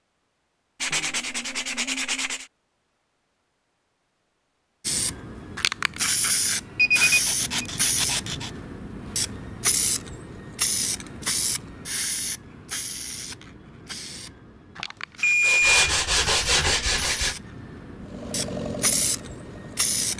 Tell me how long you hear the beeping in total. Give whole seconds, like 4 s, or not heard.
2 s.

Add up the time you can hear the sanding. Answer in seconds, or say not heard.
5 s.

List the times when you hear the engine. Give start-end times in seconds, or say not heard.
18.0-20.1.